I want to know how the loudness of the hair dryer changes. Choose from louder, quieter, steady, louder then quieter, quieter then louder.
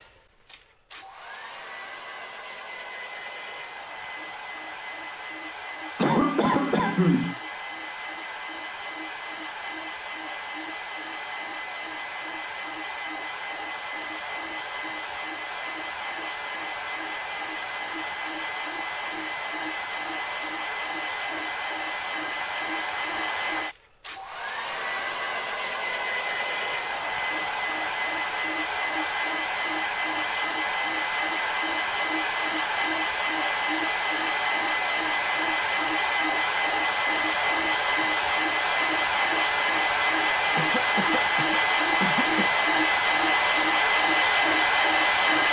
louder.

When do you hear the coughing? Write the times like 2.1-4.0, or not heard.
6.0-7.3, 40.5-42.5.